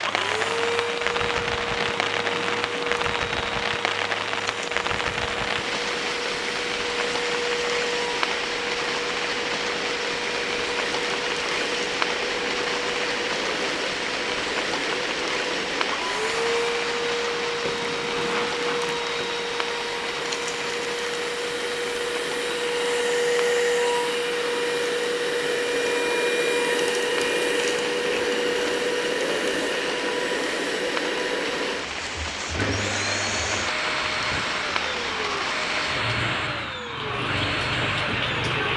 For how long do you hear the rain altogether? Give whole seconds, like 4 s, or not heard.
39 s.